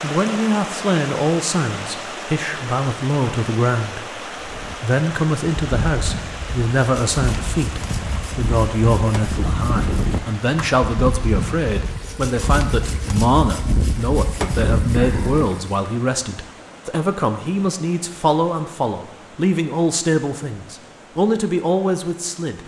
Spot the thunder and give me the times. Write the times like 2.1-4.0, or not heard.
not heard.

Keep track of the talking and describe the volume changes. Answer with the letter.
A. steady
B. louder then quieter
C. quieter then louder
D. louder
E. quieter
A.